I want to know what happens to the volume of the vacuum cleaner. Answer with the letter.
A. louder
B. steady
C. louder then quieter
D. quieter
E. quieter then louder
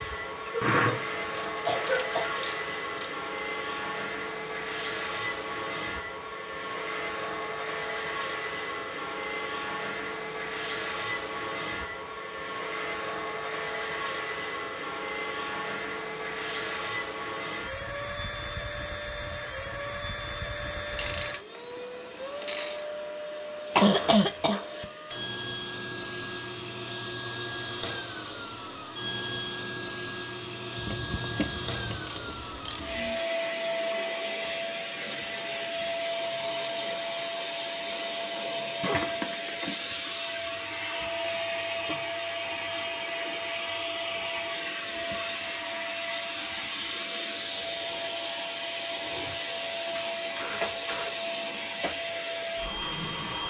B.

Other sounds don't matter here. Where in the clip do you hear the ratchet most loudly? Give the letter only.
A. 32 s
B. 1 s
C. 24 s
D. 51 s
B.